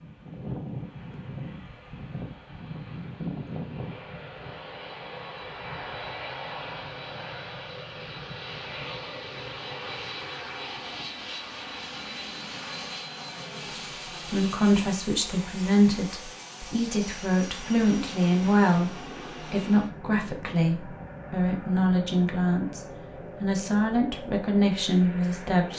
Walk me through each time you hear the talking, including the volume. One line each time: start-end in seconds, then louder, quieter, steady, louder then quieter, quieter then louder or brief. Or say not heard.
14.3-25.7 steady.